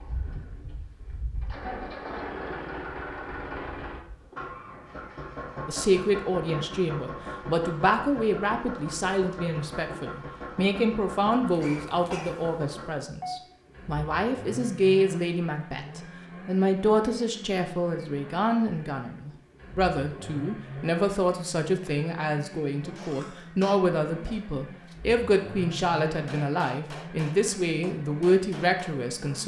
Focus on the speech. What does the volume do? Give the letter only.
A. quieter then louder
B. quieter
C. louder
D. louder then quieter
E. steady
E.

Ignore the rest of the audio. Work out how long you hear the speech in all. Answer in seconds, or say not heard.
24 s.